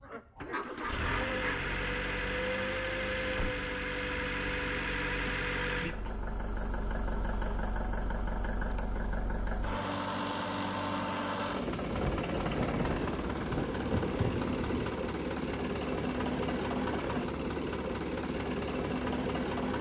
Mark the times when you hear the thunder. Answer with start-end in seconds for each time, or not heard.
11.9-14.9.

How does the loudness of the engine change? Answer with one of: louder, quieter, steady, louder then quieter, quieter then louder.
steady.